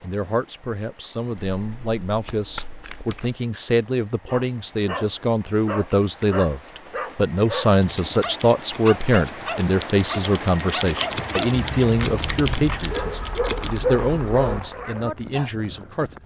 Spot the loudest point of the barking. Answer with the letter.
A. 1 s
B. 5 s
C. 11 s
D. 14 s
D.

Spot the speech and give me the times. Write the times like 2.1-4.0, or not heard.
0.0-16.2.